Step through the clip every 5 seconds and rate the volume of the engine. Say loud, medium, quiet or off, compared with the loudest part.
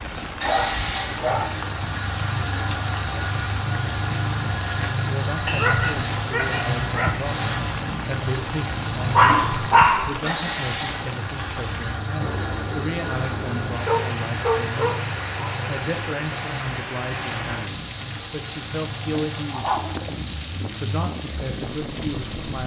loud, loud, loud, medium, medium.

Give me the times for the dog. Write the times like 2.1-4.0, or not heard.
0.5-2.0, 5.5-7.2, 9.2-10.2, 13.8-15.7, 19.2-20.1.